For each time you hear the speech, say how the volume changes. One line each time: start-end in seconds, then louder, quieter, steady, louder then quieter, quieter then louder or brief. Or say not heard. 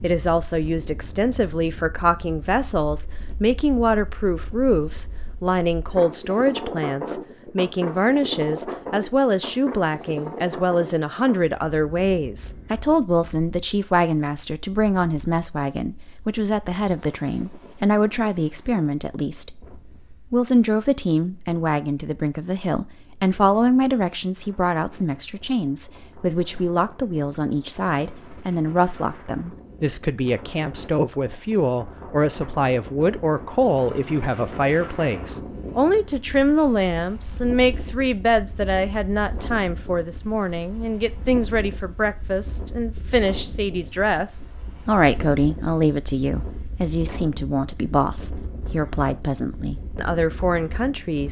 0.0-51.2 steady.